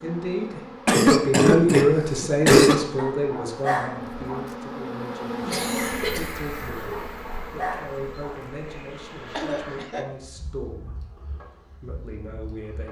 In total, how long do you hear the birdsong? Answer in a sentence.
You can't hear the birdsong here.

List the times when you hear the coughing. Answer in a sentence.
You can hear the coughing from 0.8 to 2.8 s, from 5.5 to 6.3 s and from 9.3 to 10.1 s.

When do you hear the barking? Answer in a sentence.
You can hear the barking from 3.0 to 4.5 s and from 6.9 to 8.4 s.